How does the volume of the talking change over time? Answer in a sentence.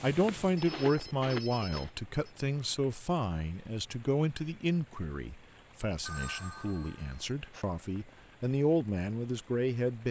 The volume of the talking goes down, then up.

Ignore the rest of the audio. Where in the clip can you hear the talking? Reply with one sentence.
The talking can be heard from 0.0 to 10.0 s.